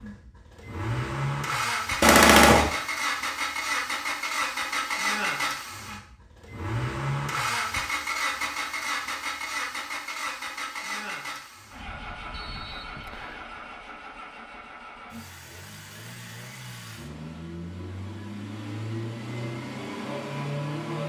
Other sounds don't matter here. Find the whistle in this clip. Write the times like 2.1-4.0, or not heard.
12.3-13.4.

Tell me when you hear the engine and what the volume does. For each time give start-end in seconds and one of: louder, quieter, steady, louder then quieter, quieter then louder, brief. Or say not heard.
0.0-21.0 quieter then louder.